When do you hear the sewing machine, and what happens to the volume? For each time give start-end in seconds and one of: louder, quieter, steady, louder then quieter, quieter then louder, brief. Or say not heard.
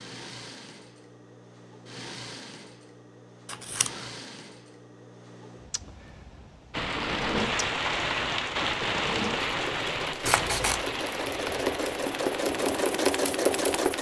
0.0-13.9 louder.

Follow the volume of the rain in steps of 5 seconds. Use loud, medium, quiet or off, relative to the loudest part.
off, loud, medium.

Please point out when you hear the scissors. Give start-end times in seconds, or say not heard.
3.5-4.0, 10.2-10.8.